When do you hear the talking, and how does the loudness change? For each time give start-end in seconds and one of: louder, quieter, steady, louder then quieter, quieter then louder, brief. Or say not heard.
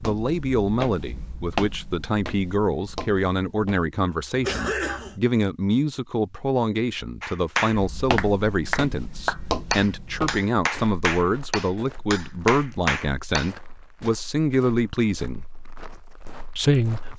0.0-15.4 steady
16.6-17.1 brief.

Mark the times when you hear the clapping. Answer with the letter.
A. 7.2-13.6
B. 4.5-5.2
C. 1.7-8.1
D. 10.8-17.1
A.